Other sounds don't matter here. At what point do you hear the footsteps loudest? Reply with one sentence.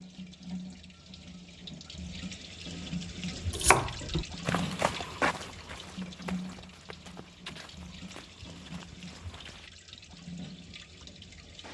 The volume of the footsteps peaks at 5 seconds.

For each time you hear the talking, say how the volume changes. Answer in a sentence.
The talking can't be heard in this clip.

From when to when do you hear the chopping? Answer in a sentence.
The chopping can be heard from 3.5 to 5.0 s.